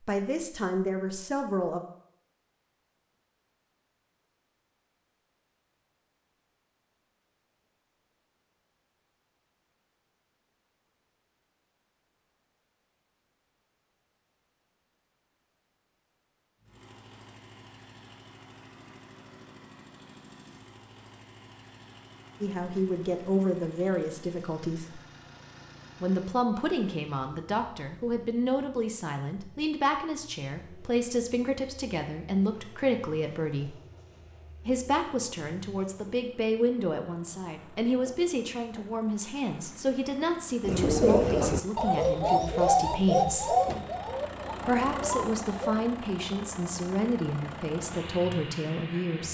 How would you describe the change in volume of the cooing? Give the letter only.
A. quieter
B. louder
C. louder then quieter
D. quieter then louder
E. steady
A.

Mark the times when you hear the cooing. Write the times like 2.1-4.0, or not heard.
40.6-45.8.